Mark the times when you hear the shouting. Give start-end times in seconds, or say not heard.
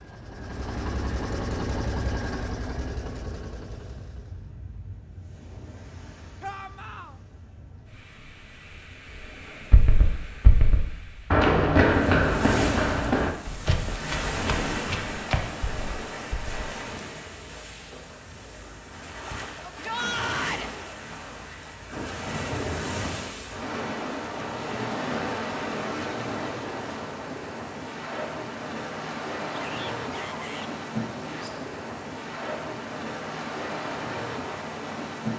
6.4-7.2, 19.6-20.7, 29.6-30.7.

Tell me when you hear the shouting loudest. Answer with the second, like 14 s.
20 s.